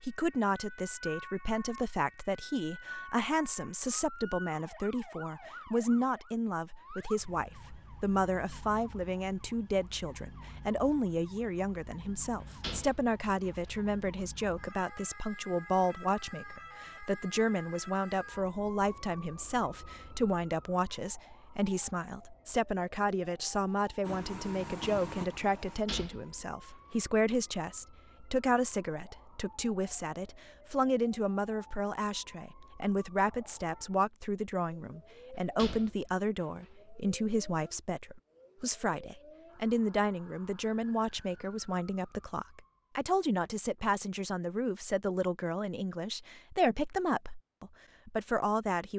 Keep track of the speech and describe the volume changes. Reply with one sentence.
The loudness of the speech stays about the same.